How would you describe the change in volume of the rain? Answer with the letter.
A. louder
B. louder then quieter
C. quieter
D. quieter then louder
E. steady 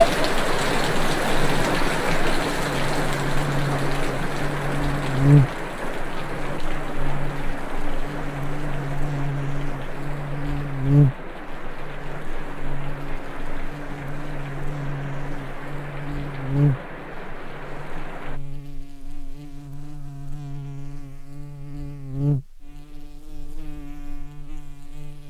C.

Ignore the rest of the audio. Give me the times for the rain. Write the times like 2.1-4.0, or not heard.
0.0-18.4.